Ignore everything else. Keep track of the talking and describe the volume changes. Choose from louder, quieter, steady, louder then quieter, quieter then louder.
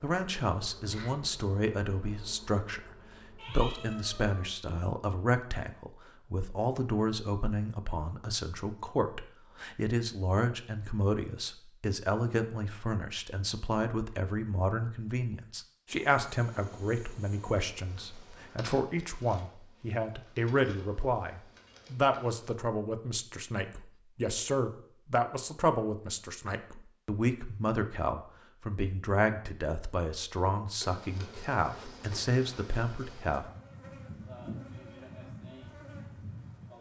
steady.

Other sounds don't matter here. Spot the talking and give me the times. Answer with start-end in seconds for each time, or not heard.
0.0-33.5.